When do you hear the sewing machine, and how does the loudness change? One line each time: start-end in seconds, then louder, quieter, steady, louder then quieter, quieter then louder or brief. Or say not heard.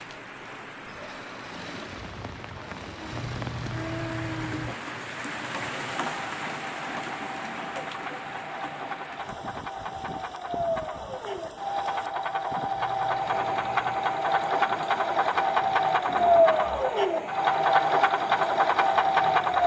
0.0-19.6 louder.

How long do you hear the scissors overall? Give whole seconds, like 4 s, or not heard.
3 s.